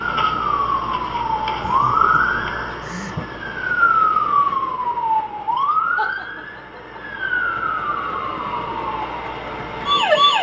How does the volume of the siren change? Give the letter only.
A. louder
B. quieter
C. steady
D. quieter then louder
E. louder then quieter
B.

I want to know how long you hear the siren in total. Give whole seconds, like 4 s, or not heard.
10 s.